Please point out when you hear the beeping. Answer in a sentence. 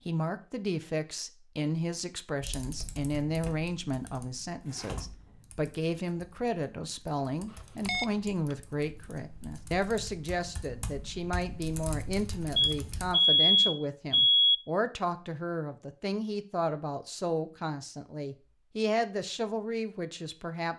You can hear the beeping from 7.8 to 8.6 s and from 12.6 to 14.6 s.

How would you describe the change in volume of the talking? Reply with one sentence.
The volume of the talking stays about the same.